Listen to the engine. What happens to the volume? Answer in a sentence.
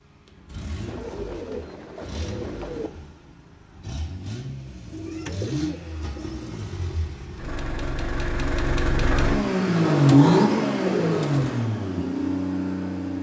The loudness of the engine goes up.